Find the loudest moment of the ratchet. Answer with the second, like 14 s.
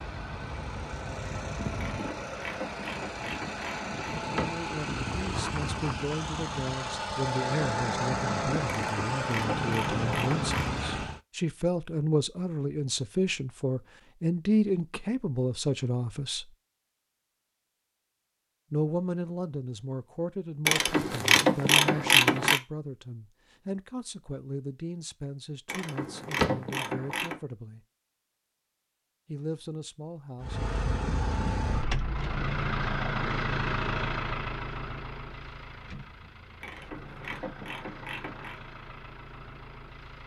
22 s.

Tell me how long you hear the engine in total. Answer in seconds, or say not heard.
21 s.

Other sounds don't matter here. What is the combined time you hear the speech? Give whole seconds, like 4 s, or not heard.
23 s.